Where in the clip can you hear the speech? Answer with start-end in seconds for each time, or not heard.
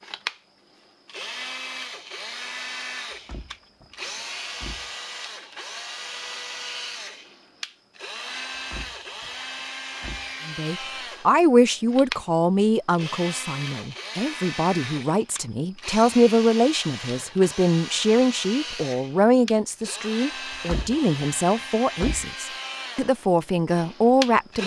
10.4-24.6.